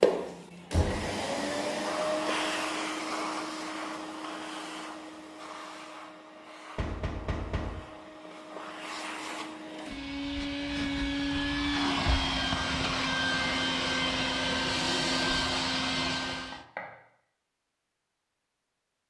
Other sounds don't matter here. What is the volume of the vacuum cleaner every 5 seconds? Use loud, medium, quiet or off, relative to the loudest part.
loud, quiet, loud, loud.